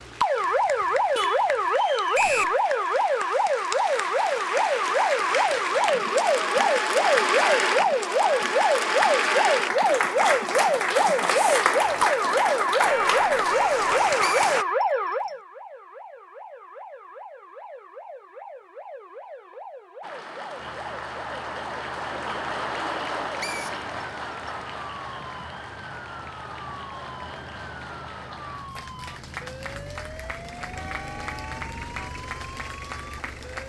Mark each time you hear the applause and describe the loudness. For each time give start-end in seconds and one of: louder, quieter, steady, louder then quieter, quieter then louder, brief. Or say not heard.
0.0-14.7 louder
20.0-33.6 quieter.